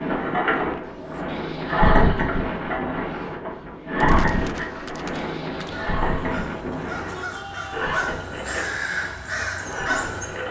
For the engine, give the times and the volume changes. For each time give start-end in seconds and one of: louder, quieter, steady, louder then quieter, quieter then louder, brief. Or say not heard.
0.0-10.4 quieter.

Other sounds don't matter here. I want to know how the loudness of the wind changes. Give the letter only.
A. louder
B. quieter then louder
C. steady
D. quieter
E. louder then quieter
D.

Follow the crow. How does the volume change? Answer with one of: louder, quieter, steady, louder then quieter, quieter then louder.
louder.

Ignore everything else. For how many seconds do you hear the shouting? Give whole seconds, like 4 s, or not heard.
2 s.